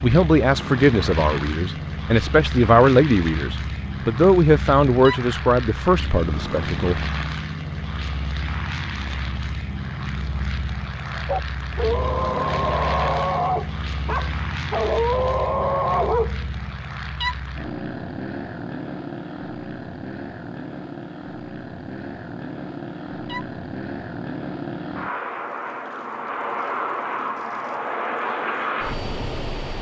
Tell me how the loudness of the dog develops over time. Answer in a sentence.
The loudness of the dog stays about the same.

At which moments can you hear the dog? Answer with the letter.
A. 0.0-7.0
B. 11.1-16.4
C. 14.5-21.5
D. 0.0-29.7
B.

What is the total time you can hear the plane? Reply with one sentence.
You can hear the plane for 30 seconds altogether.